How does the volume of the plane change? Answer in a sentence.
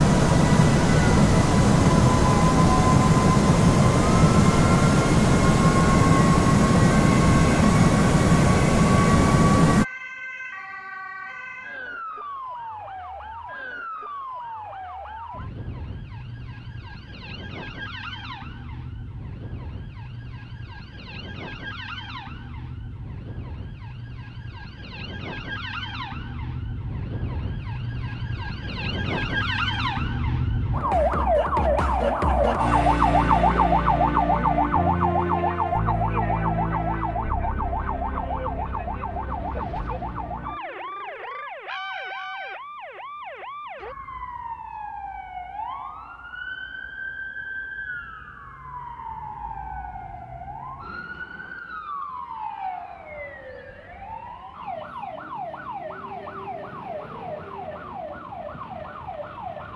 The volume of the plane stays about the same.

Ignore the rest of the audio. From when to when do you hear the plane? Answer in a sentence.
The plane can be heard from 0.0 to 9.8 s.